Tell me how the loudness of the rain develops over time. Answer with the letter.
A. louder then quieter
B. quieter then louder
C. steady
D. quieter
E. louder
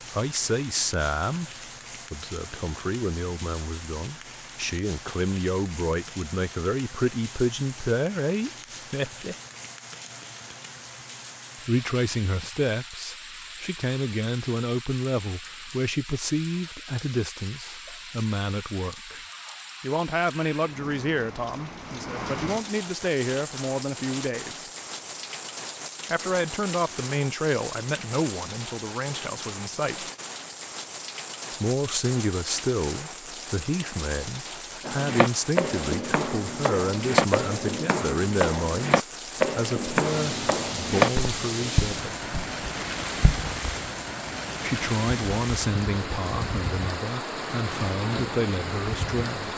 E.